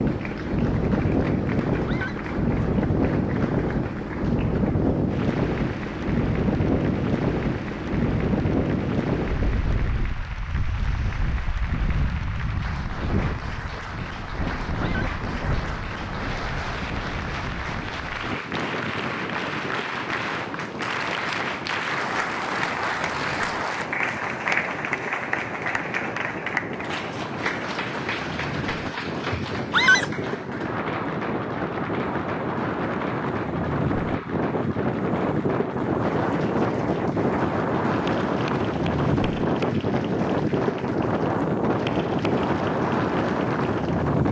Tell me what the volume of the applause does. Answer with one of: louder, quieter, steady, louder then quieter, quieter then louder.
louder then quieter.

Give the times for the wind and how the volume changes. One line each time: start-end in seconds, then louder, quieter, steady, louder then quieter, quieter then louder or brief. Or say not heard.
0.0-44.2 quieter then louder.